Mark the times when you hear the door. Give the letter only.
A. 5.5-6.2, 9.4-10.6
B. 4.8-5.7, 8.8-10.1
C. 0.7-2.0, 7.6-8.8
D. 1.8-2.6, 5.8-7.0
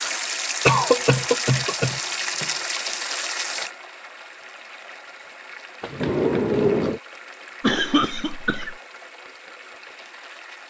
D.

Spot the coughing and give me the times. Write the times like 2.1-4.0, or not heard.
0.7-2.0, 7.6-8.8.